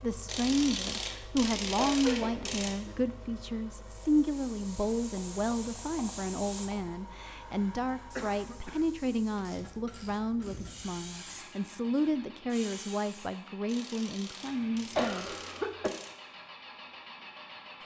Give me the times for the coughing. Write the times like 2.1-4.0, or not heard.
1.8-3.0, 8.2-8.8, 14.9-15.9.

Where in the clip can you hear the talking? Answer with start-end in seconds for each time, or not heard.
0.0-15.2.